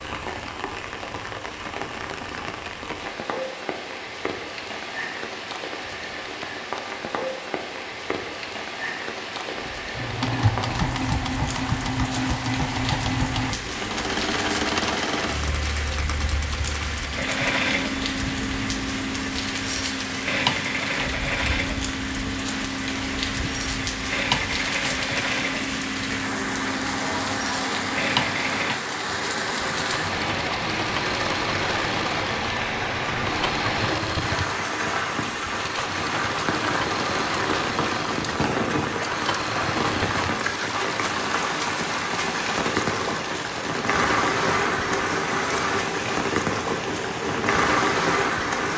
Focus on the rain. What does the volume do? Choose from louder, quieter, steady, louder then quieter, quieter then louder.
louder.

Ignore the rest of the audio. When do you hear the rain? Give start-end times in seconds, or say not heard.
0.0-48.7.